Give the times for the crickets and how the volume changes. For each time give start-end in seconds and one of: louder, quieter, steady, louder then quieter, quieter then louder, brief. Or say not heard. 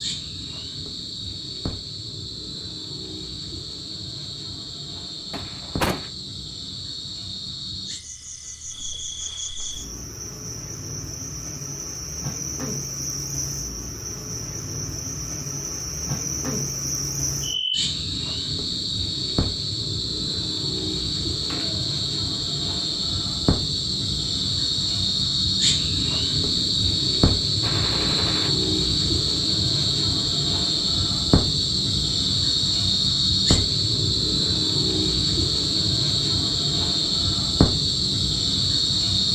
0.0-39.3 louder.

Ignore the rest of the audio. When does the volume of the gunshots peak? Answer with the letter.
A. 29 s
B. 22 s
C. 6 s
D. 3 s
C.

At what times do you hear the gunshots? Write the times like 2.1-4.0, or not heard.
5.3-6.1, 21.4-21.9, 27.6-28.5.